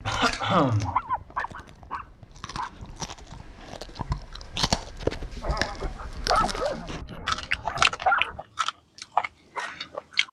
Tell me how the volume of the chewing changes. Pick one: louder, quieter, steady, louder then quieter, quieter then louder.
louder.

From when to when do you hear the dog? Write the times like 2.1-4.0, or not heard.
0.8-2.7, 5.8-8.4.